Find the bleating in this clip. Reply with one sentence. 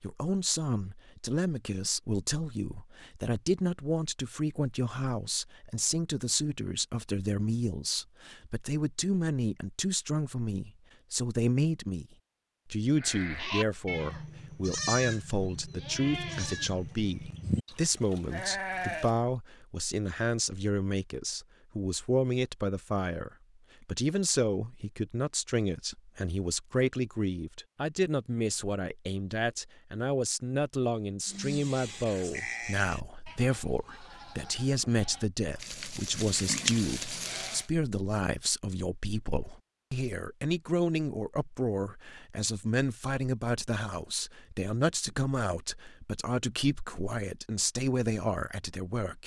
The bleating can be heard from 12.9 to 19.1 s and from 31.2 to 37.7 s.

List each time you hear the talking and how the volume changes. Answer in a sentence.
The talking can be heard from 0.0 to 12.1 s, at a steady volume; and from 12.7 to 49.2 s, at a steady volume.